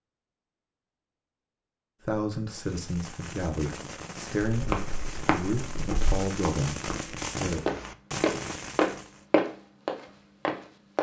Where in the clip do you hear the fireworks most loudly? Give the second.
7 s.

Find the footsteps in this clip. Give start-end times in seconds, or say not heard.
4.5-10.9.